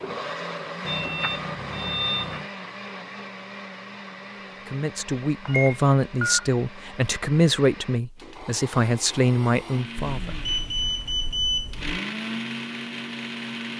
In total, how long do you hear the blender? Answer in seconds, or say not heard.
14 s.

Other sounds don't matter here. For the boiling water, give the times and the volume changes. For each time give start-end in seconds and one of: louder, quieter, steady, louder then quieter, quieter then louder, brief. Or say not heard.
not heard.